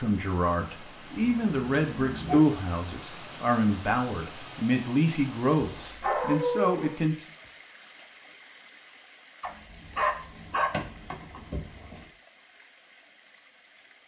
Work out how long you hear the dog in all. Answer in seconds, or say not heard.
5 s.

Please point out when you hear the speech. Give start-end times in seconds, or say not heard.
0.0-7.2.